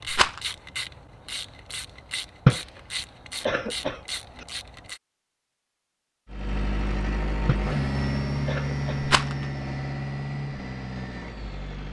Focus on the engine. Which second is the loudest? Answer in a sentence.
The volume of the engine peaks at 8 seconds.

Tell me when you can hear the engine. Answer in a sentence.
The engine can be heard from 6.2 to 11.8 s.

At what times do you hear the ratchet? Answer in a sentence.
You can hear the ratchet from 0.0 to 5.0 s.